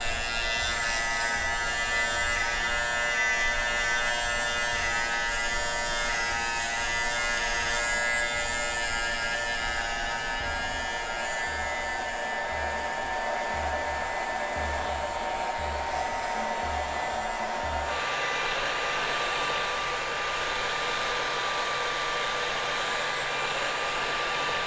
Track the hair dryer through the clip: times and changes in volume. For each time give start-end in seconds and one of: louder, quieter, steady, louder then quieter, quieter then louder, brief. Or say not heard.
0.0-24.6 louder.